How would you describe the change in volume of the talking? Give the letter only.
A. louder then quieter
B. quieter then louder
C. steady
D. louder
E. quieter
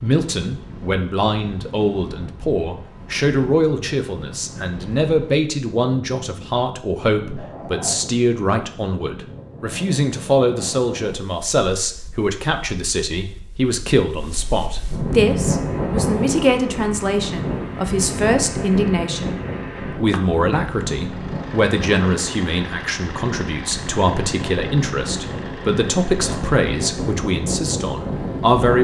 C.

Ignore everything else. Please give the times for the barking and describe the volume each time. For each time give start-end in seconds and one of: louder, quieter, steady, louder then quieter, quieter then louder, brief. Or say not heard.
not heard.